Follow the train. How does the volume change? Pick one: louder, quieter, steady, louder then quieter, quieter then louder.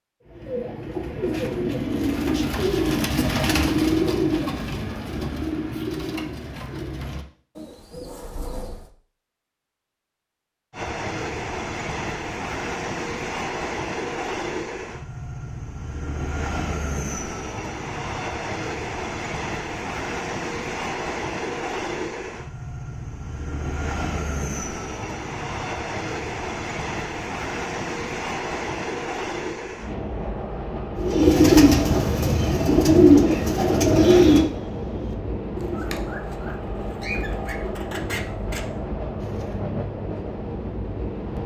steady.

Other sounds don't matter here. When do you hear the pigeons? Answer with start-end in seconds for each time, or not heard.
0.2-8.9, 30.9-39.6.